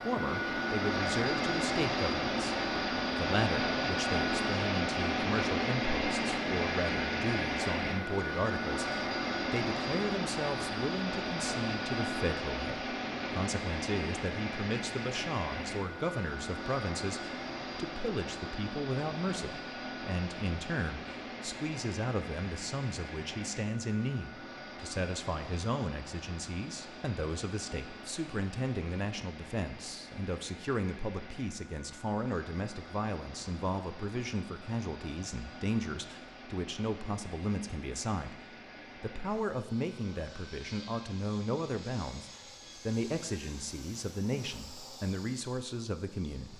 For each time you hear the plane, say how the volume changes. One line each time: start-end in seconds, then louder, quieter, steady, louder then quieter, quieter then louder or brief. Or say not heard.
0.0-46.5 quieter.